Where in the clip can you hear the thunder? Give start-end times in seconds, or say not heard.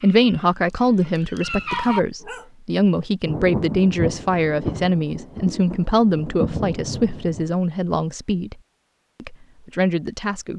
3.2-7.5.